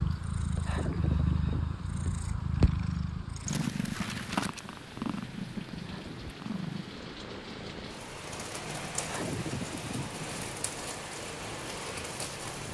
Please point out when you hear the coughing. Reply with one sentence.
You can't hear the coughing here.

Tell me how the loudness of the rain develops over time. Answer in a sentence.
The volume of the rain goes up.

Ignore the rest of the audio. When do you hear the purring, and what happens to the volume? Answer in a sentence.
The purring can be heard from 0.0 to 12.6 s, getting quieter.